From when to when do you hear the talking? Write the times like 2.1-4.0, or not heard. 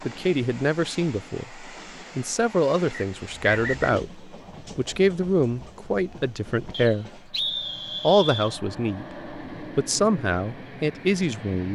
0.1-7.2, 8.0-11.6.